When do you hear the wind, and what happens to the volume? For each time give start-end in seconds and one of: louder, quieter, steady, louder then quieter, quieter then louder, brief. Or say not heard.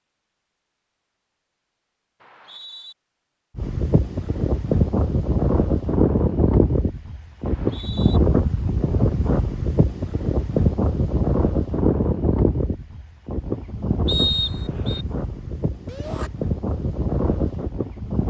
3.5-18.2 quieter.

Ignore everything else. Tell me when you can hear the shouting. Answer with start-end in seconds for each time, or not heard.
15.8-16.3.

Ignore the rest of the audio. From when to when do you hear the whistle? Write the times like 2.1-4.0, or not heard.
2.2-3.0, 7.4-8.2, 14.1-15.1.